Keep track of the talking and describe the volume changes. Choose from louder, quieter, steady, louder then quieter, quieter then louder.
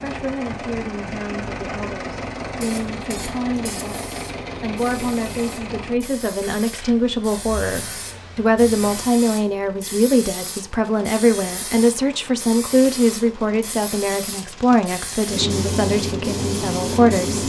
louder.